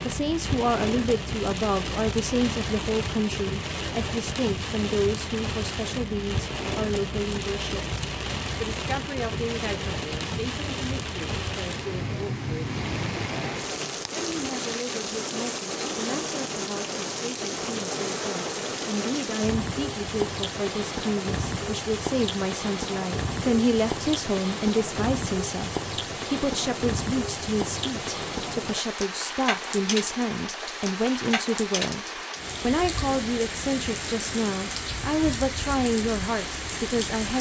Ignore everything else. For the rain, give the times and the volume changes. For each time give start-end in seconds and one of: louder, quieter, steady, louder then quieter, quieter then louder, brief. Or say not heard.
0.0-37.3 steady.